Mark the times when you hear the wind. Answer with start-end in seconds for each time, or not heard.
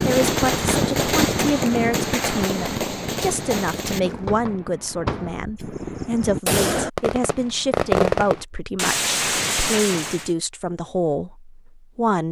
0.0-6.4.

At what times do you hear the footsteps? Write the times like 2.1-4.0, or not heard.
not heard.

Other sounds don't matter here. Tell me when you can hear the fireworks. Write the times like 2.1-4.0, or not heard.
0.0-10.3.